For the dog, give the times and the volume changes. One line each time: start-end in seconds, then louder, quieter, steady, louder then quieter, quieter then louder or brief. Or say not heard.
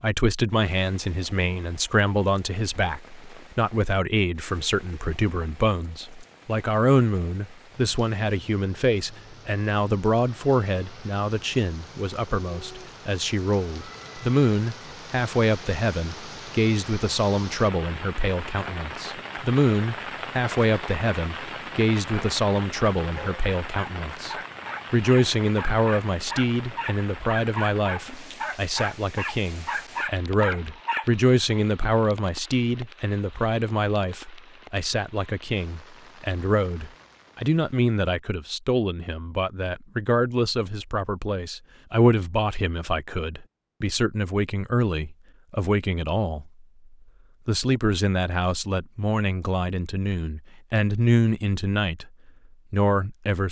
23.1-31.1 louder.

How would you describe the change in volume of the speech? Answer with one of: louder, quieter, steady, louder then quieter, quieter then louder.
steady.